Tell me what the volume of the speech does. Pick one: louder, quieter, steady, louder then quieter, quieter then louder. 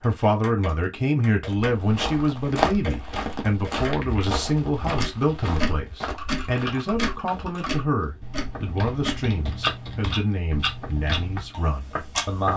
quieter.